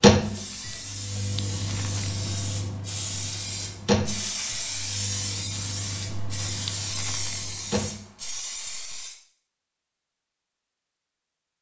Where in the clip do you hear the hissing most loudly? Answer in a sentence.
The loudest moment of the hissing is at 5 seconds.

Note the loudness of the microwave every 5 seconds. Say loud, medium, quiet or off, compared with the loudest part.
loud, medium, off.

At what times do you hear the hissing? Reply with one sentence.
You can hear the hissing from 0.1 to 9.2 s.